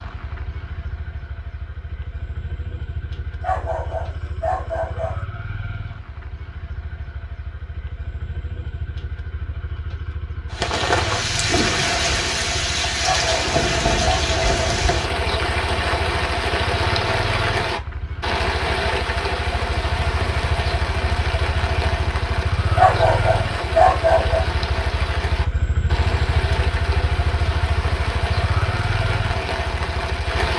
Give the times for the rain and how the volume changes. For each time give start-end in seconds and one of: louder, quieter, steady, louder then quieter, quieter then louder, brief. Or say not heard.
10.5-30.5 quieter.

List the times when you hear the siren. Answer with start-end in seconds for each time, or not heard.
not heard.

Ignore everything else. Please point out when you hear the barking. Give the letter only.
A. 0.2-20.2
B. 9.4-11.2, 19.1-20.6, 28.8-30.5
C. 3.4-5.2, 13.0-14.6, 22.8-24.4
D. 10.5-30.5
C.